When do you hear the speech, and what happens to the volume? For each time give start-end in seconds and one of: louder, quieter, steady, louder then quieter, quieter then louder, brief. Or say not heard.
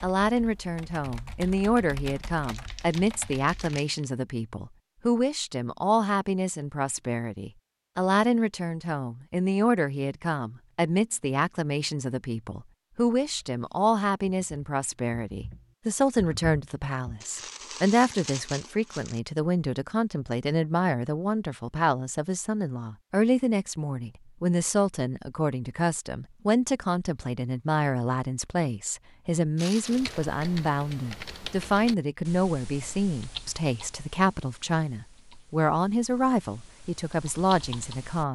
0.0-38.2 steady.